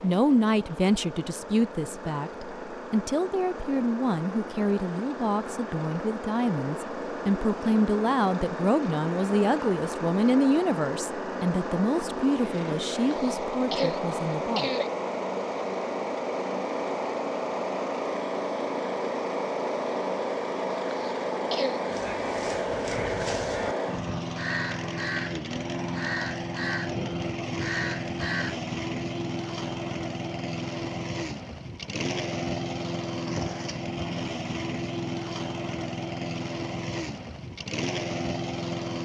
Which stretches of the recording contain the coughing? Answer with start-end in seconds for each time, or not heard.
12.9-14.9, 20.9-21.9.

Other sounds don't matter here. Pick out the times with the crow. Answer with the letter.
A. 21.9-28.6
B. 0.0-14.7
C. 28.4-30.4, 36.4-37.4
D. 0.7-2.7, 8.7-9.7
A.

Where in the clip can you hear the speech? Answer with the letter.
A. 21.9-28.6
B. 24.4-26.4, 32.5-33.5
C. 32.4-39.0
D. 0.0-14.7
D.